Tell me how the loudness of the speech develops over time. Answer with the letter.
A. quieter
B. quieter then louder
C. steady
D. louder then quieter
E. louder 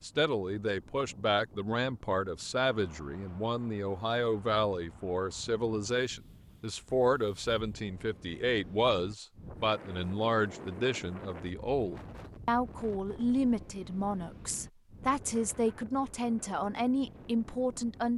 C.